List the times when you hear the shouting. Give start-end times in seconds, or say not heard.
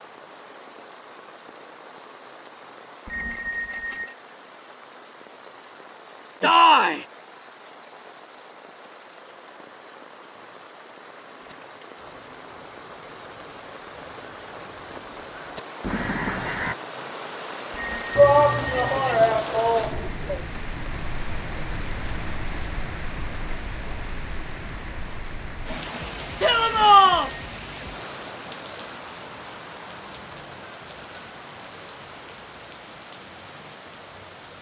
6.4-7.0, 18.1-20.4, 26.4-27.3.